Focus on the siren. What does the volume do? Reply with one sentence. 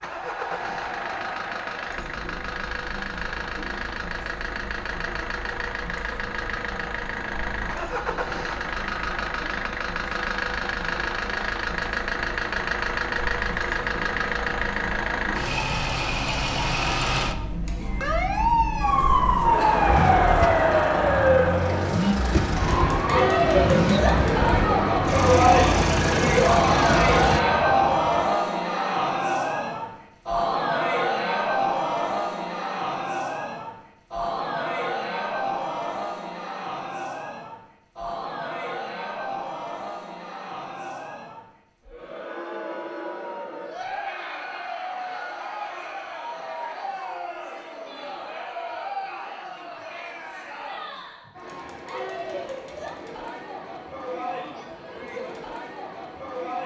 The volume of the siren goes down.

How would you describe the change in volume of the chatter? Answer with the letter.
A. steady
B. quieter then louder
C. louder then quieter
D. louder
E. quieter
C.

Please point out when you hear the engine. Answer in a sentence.
The engine can be heard from 0.0 to 27.4 s.